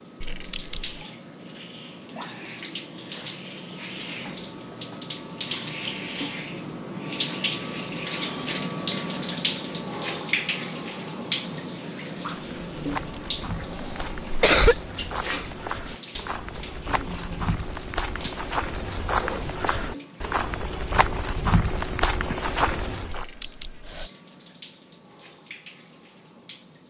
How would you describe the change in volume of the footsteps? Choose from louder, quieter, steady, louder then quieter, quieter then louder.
louder.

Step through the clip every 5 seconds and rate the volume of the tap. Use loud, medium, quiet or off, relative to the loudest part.
medium, loud, loud, medium, quiet, quiet.